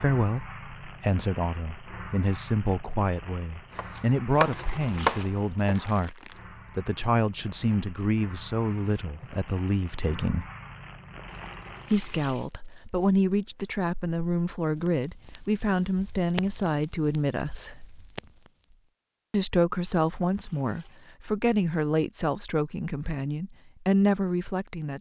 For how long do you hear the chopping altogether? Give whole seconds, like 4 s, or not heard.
2 s.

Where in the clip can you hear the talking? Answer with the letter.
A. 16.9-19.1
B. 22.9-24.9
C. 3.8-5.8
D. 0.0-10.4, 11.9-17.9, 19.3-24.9
D.